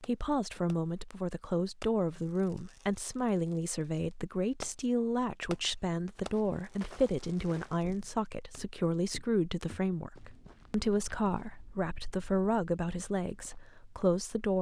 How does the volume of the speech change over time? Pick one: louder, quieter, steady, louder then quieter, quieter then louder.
steady.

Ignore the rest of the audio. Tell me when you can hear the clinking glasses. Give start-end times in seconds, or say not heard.
not heard.